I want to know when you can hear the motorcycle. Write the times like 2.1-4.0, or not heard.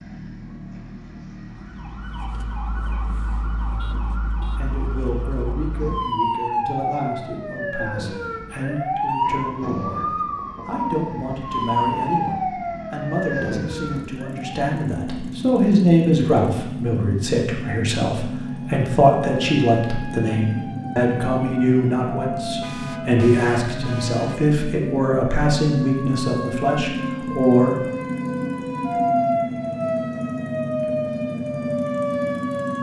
0.0-32.7.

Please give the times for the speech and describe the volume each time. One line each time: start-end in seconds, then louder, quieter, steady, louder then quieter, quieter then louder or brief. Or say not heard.
4.5-27.8 louder.